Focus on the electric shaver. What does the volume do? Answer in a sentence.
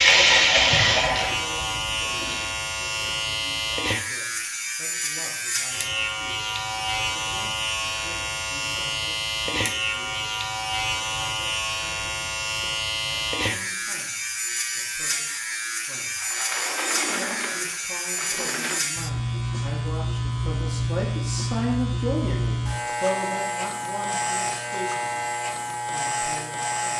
The loudness of the electric shaver stays about the same.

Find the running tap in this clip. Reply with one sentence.
The running tap can be heard from 0.0 to 2.5 s.